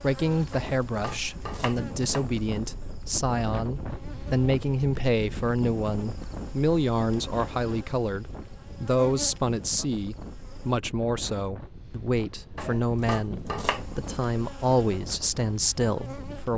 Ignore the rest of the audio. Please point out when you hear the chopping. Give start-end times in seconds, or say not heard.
0.5-2.4, 12.6-14.0.